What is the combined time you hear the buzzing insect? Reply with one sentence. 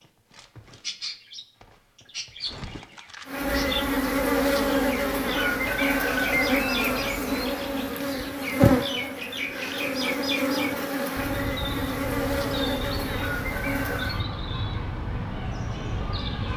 You can hear the buzzing insect for 11 seconds altogether.